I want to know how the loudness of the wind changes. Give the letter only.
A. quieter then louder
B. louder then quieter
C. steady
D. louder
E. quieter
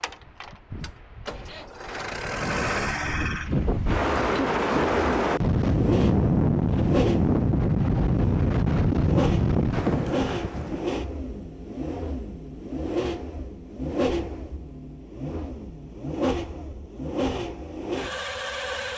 D.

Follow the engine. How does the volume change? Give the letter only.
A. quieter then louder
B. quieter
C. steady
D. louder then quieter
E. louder
C.